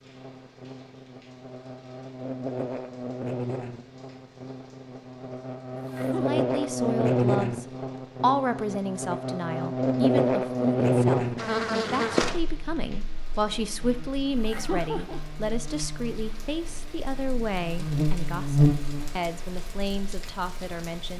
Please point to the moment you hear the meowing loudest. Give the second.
15 s.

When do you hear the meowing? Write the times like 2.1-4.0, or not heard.
5.8-6.3, 14.3-15.2.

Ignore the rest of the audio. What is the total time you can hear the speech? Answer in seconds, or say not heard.
15 s.